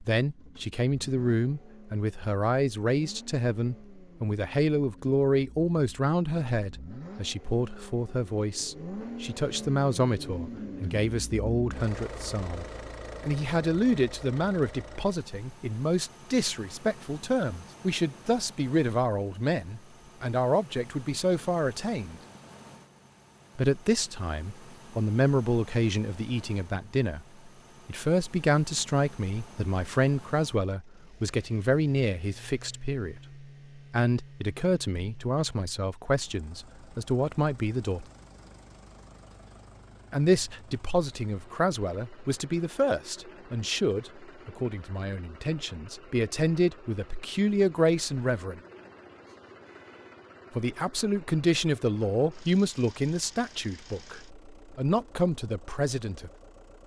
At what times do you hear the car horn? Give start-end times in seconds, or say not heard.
49.2-50.2.